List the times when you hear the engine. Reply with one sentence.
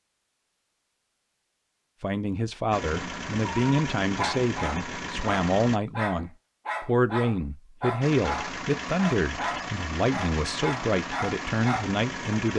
You can hear the engine from 2.7 to 5.8 s and from 8.0 to 12.5 s.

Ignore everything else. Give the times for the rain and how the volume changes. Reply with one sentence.
You can't hear the rain here.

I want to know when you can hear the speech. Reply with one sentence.
The speech can be heard from 2.0 to 12.5 s.